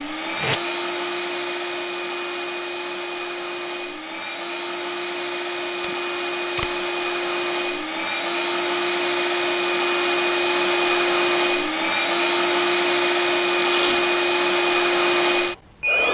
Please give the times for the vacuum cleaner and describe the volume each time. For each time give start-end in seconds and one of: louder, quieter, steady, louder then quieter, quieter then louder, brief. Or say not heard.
0.0-16.0 louder.